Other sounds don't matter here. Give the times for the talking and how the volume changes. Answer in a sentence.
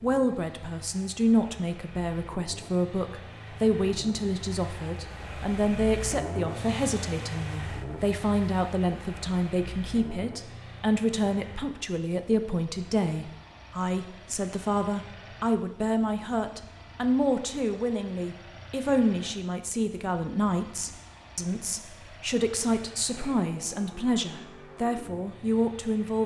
You can hear the talking from 0.0 to 26.2 s, at a steady volume.